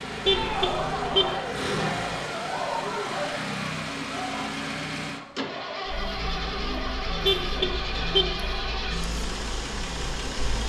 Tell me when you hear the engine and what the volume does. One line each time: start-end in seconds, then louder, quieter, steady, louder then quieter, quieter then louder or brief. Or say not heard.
0.0-10.6 steady.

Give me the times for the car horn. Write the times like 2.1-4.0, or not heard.
0.2-1.3, 7.2-8.3.